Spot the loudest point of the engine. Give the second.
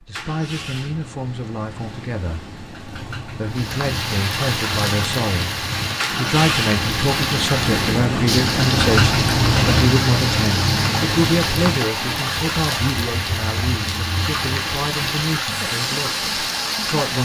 9 s.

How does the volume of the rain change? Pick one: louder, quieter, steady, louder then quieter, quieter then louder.
steady.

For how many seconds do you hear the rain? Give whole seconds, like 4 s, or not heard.
14 s.